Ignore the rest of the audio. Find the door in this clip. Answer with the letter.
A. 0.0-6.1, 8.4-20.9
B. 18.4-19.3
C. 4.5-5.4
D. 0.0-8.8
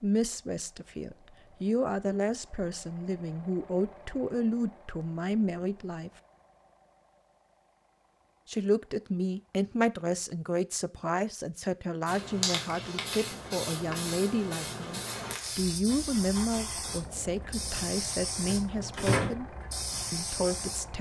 B.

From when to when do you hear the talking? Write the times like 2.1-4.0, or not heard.
0.0-6.1, 8.4-20.9.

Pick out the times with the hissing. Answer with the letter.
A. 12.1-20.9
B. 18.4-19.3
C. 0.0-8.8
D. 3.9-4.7
A.